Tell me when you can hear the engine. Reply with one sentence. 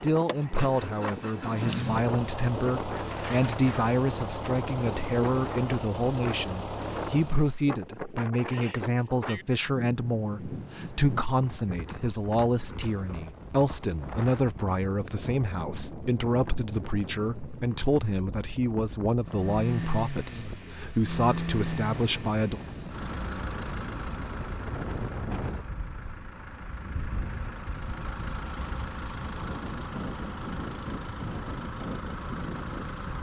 The engine can be heard from 0.1 to 7.5 s and from 19.2 to 33.1 s.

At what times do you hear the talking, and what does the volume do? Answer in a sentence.
The talking can be heard from 0.0 to 22.6 s, at a steady volume.